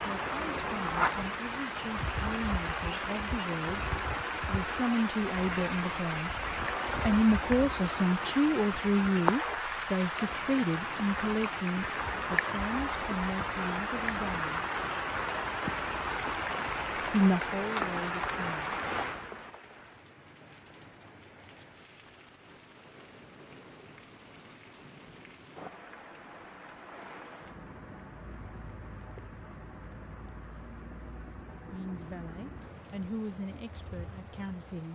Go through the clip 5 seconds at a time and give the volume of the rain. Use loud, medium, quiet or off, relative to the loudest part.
loud, loud, loud, loud, quiet, quiet, quiet.